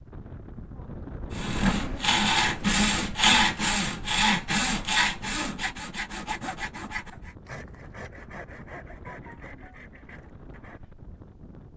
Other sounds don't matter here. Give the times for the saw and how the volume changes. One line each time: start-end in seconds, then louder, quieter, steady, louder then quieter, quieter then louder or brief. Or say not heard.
1.3-10.8 quieter.